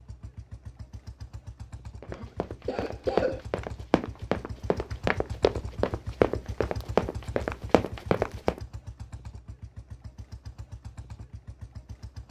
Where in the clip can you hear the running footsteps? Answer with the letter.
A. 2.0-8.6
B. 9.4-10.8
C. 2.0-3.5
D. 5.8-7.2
A.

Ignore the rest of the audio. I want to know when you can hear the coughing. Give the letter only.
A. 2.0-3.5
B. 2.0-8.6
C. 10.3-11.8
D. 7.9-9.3
A.